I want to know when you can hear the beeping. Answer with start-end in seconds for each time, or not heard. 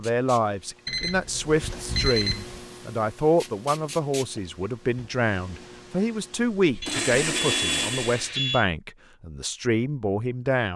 0.8-2.6, 6.8-8.7.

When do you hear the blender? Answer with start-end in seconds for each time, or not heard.
6.6-8.3.